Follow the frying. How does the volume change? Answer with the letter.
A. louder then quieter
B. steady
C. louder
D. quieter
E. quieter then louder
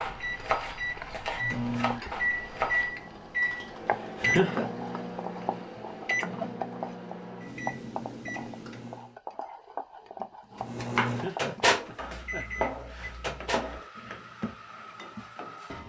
A.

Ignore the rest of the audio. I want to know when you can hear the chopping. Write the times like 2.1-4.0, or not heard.
0.0-3.0, 10.2-15.2.